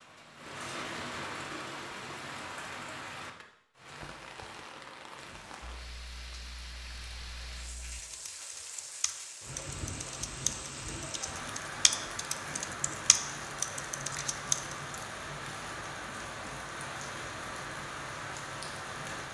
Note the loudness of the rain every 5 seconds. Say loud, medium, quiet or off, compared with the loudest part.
loud, medium, loud, loud.